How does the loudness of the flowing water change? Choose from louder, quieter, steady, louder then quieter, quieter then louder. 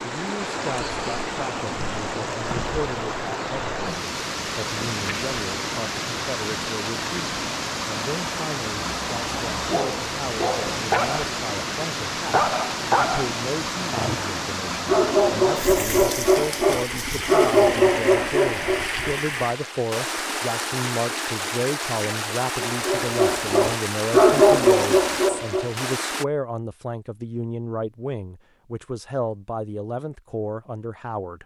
steady.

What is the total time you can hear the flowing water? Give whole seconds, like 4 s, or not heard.
26 s.